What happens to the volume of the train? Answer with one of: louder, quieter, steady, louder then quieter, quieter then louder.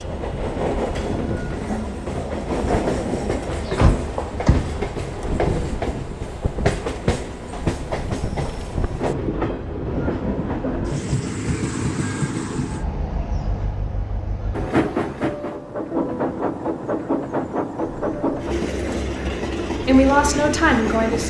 steady.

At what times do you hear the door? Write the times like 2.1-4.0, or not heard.
3.5-4.8.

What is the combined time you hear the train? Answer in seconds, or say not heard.
21 s.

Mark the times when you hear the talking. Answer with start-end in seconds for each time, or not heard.
19.8-21.2.